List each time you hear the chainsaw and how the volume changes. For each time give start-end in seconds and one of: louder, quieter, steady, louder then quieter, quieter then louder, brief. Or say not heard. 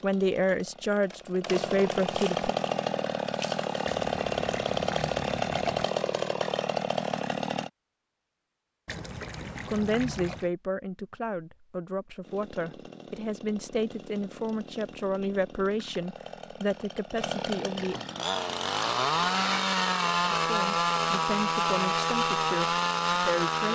0.0-7.7 louder
12.2-23.7 louder.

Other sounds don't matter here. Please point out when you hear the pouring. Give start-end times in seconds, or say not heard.
3.9-5.8, 8.8-10.5, 17.8-19.6.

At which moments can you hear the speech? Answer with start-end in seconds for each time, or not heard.
0.0-2.5, 9.7-18.0, 20.4-23.7.